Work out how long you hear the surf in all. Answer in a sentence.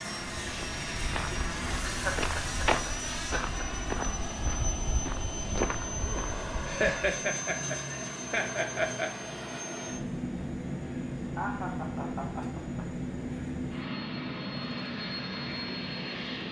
The surf can't be heard in this clip.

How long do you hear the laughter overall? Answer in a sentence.
You can hear the laughter for 6 seconds altogether.